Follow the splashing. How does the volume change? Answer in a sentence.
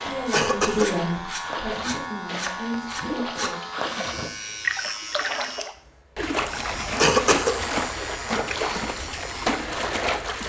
The volume of the splashing goes up.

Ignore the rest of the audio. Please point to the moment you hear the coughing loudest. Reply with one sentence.
The volume of the coughing peaks at 7 seconds.